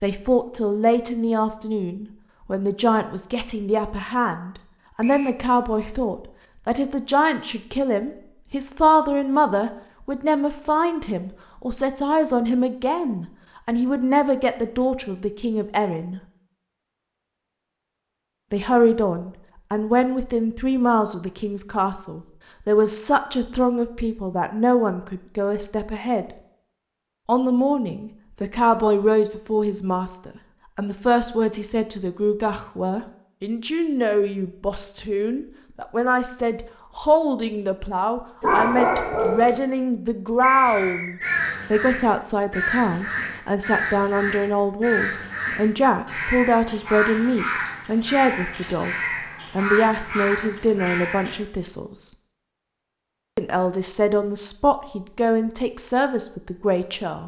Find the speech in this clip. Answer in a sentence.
You can hear the speech from 0.0 to 16.2 s, from 18.5 to 26.4 s, from 27.2 to 49.0 s, from 49.5 to 52.0 s and from 53.4 to 57.2 s.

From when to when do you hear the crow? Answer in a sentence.
The crow can be heard from 40.6 to 51.4 s.